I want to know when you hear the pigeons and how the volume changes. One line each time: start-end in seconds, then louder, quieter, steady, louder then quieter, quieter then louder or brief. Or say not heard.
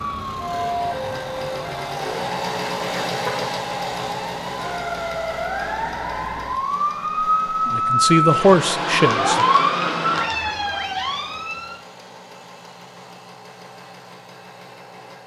not heard.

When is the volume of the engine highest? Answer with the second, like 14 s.
3 s.